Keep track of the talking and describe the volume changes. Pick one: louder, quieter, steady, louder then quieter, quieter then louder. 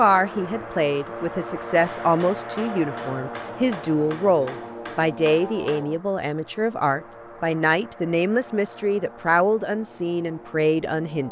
steady.